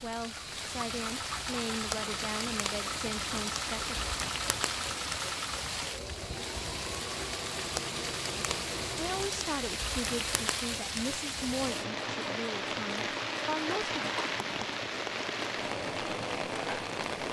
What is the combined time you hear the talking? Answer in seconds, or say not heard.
10 s.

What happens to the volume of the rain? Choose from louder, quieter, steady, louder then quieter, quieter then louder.
steady.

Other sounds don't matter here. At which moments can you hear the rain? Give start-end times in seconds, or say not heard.
0.0-17.2.